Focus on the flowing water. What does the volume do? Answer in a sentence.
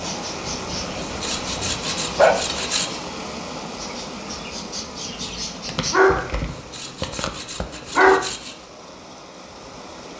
The loudness of the flowing water goes down.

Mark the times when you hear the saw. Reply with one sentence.
The saw can be heard from 1.0 to 3.0 s and from 6.5 to 8.7 s.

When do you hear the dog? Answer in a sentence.
You can hear the dog from 0.5 to 2.4 s and from 5.7 to 8.2 s.